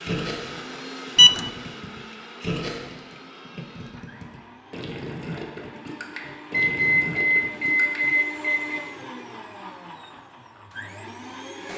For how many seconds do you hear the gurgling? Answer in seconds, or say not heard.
8 s.